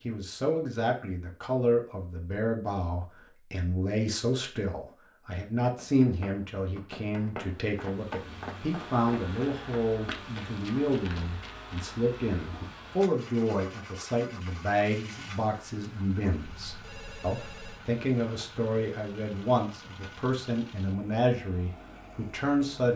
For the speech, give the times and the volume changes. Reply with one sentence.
You can hear the speech from 0.0 to 22.9 s, at a steady volume.